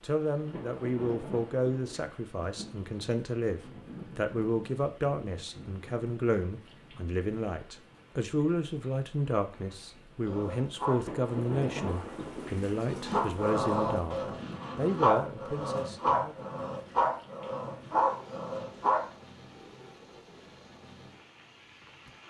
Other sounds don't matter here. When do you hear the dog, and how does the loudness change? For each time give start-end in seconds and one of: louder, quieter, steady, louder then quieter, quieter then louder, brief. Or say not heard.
10.2-19.1 louder.